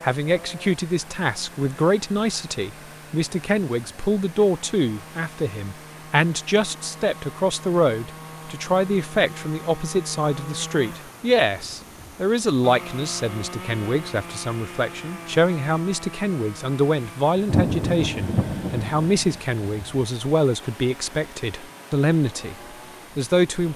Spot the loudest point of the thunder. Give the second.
18 s.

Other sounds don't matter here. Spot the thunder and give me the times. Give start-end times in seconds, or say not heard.
17.4-19.9.